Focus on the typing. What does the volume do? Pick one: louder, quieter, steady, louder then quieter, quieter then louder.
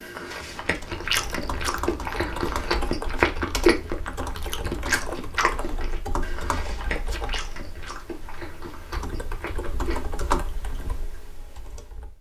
quieter then louder.